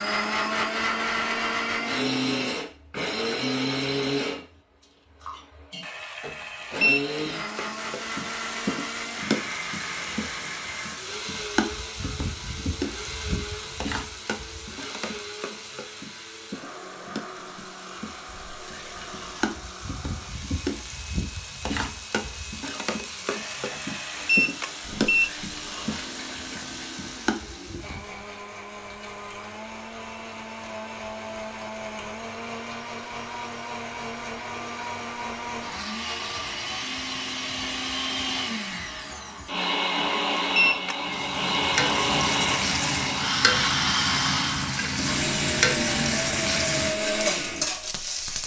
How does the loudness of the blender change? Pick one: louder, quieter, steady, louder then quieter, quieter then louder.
quieter then louder.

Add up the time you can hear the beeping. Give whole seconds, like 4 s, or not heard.
5 s.